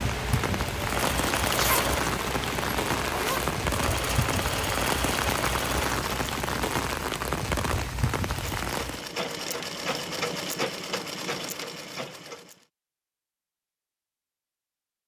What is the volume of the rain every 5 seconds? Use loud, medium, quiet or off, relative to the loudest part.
loud, loud, off.